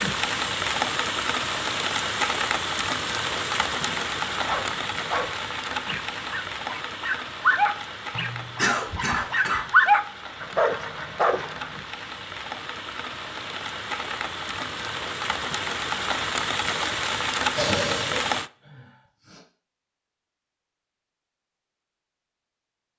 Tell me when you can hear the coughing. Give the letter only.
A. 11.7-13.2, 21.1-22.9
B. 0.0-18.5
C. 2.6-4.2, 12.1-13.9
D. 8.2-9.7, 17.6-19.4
D.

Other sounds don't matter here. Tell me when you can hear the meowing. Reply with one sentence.
The meowing can't be heard in this clip.